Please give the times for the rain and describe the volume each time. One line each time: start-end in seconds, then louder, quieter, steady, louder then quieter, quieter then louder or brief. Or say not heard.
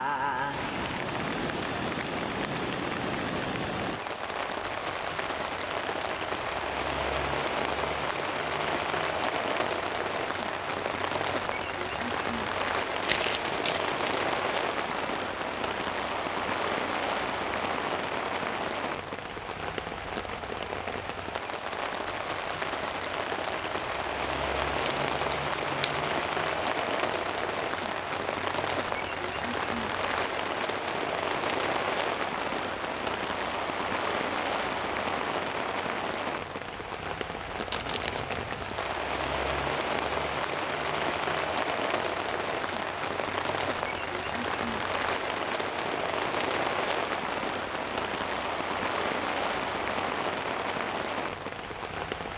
0.0-52.3 steady.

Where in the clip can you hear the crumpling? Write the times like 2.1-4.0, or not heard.
13.0-15.1, 24.6-26.2, 37.7-38.8.